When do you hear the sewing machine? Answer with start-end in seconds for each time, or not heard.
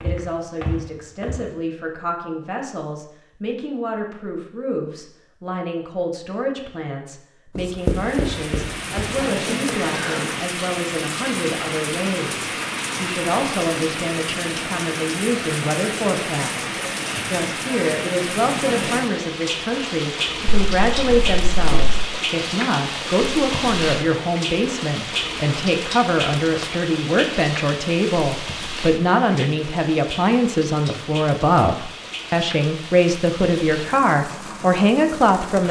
not heard.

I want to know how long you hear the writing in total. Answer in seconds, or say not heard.
3 s.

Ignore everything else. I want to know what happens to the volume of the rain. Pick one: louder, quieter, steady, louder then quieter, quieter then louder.
quieter.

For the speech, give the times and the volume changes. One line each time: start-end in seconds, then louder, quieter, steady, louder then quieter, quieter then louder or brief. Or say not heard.
0.0-35.6 louder.